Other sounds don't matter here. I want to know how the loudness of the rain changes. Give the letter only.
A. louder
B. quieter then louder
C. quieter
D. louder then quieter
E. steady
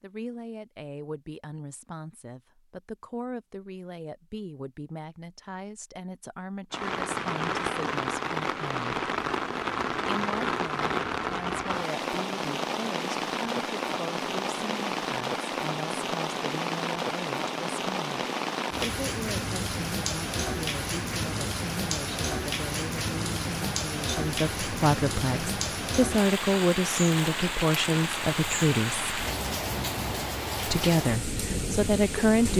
E.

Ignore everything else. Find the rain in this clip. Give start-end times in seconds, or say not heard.
6.7-32.5.